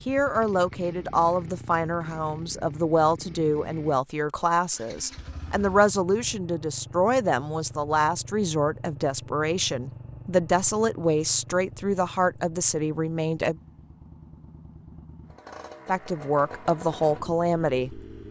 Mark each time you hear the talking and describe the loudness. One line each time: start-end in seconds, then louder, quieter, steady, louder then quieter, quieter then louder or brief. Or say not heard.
0.1-13.6 steady
15.8-18.0 brief.